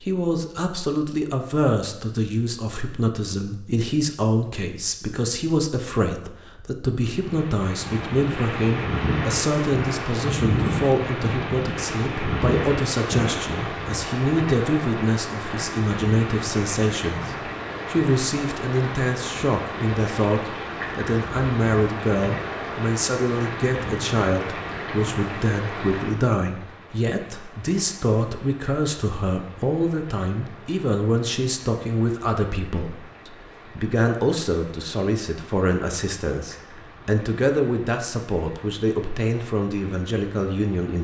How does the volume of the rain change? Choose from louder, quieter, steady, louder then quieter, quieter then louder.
quieter.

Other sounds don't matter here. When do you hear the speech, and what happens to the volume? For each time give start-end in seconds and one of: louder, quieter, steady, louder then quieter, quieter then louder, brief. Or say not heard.
0.0-41.0 steady.